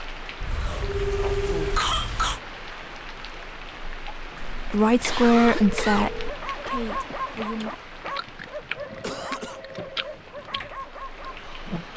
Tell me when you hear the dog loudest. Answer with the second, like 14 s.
7 s.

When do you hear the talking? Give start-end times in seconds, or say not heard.
4.7-7.7.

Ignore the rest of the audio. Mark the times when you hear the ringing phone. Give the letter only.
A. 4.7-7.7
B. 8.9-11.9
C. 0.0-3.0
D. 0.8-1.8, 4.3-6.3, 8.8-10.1
D.